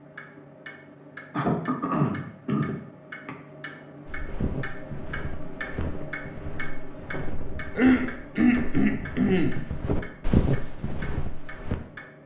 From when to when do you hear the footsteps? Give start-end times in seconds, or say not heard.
4.0-11.8.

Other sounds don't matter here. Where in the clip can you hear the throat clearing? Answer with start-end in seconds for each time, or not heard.
1.3-3.4, 7.8-9.6.